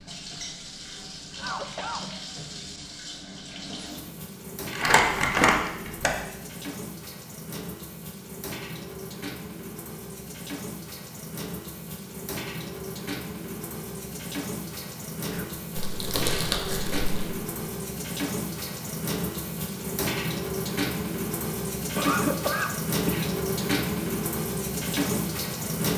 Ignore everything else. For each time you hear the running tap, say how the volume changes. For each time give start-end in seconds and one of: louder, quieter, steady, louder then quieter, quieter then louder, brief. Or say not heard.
0.0-25.9 louder.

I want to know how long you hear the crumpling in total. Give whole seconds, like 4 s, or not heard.
3 s.